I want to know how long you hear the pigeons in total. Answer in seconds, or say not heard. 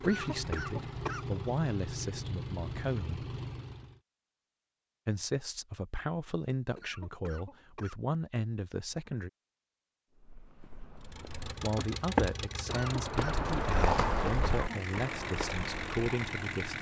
not heard.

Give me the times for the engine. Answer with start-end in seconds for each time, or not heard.
0.0-4.0, 11.0-16.7.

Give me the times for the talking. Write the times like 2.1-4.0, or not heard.
0.1-3.2, 5.0-9.3, 11.5-16.7.